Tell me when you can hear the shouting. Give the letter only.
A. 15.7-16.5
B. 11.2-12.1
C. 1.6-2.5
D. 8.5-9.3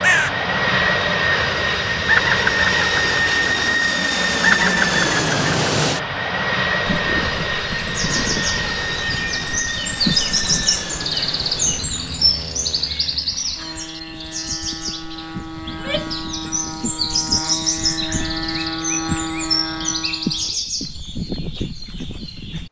A.